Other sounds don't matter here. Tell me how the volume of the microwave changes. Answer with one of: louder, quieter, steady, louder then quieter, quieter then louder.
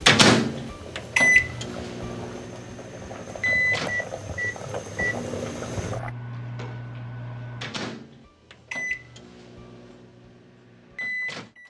quieter.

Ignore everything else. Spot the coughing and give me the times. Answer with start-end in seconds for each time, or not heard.
not heard.